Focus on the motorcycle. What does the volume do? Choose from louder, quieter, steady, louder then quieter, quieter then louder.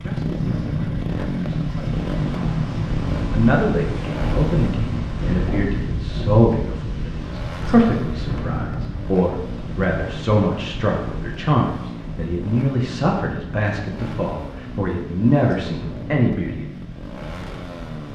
quieter.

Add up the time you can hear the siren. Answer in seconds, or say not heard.
not heard.